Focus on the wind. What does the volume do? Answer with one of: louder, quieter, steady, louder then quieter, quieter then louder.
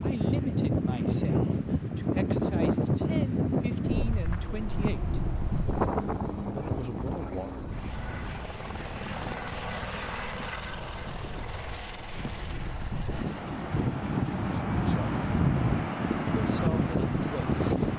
quieter then louder.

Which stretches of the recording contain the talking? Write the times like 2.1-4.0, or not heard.
0.0-5.2, 6.5-7.5, 14.7-15.1, 16.3-17.9.